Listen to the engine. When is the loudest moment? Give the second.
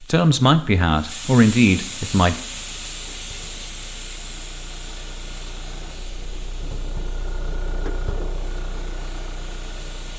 8 s.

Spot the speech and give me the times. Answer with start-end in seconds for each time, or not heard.
0.0-2.4.